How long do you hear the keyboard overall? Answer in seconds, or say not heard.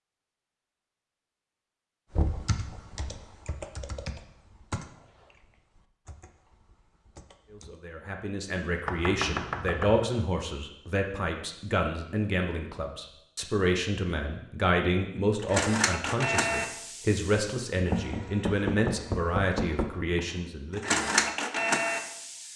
6 s.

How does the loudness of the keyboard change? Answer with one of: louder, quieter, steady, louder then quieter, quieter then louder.
quieter.